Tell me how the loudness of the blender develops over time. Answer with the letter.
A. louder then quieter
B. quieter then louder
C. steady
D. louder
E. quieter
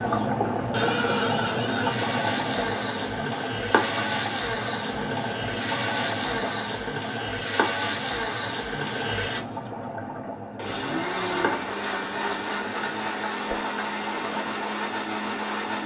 C.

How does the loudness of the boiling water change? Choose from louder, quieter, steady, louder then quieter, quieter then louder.
quieter.